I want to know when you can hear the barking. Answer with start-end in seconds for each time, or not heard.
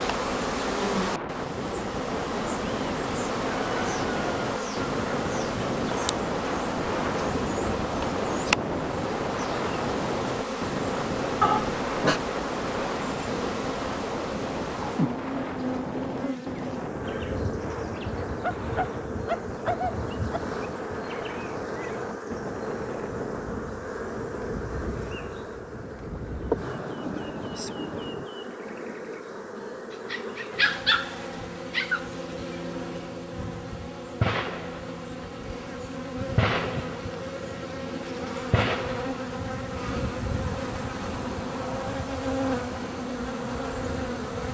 11.4-12.2, 18.4-20.4, 30.1-32.0.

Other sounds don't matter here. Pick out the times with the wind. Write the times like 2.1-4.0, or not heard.
0.0-28.3.